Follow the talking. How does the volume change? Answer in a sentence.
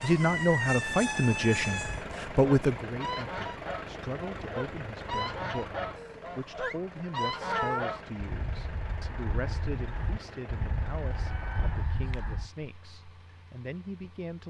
The loudness of the talking goes down.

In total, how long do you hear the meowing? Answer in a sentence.
You can hear the meowing for 5 seconds altogether.